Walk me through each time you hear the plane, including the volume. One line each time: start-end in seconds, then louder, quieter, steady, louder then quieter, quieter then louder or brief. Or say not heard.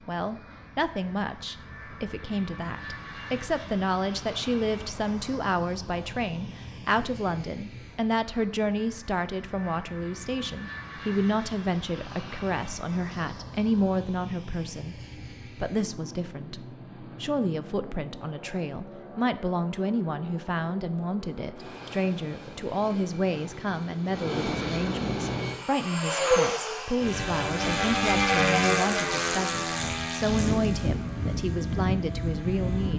0.0-32.9 louder.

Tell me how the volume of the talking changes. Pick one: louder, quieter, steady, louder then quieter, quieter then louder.
steady.